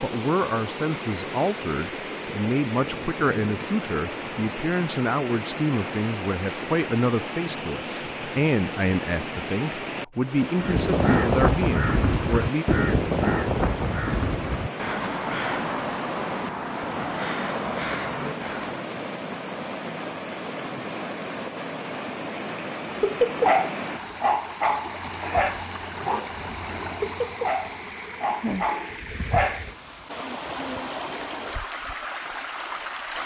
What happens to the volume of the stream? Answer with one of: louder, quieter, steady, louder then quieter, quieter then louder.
steady.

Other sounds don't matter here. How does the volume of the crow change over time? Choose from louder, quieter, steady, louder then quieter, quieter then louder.
quieter.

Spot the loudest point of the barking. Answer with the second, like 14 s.
23 s.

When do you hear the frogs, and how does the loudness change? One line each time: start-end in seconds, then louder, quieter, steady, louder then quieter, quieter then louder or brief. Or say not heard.
not heard.